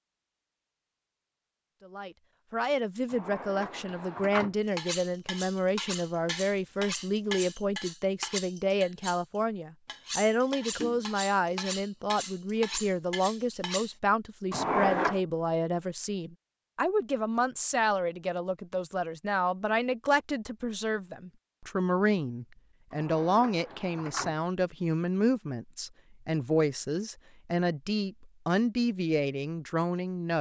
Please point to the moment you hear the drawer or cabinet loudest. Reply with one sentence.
The loudest moment of the drawer or cabinet is at 15 seconds.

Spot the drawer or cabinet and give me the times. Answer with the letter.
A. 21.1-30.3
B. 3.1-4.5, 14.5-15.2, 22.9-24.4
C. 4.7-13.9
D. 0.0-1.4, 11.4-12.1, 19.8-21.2
B.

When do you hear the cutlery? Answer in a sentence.
You can hear the cutlery from 4.7 to 13.9 s.